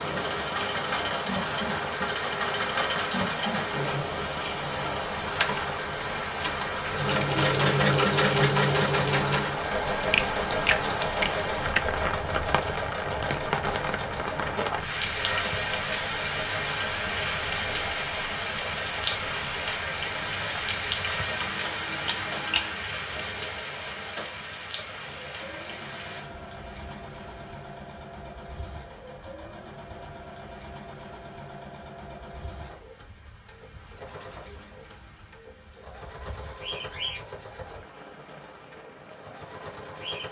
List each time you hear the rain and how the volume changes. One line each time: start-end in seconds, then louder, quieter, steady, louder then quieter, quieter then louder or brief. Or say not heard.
0.0-40.2 quieter.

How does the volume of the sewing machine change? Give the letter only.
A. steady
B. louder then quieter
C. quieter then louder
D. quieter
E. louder
D.